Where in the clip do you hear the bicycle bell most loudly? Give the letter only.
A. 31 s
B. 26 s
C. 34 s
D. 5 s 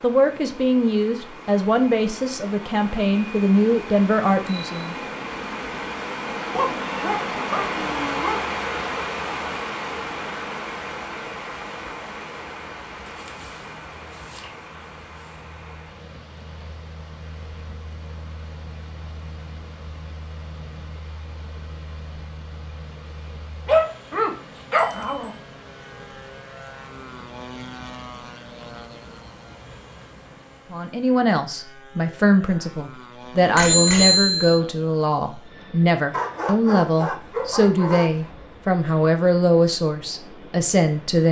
C.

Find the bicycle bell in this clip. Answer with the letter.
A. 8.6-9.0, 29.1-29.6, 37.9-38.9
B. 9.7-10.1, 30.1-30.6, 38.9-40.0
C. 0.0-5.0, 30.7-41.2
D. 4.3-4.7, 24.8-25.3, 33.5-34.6
D.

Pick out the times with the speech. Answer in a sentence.
The speech can be heard from 0.0 to 5.0 s and from 30.7 to 41.2 s.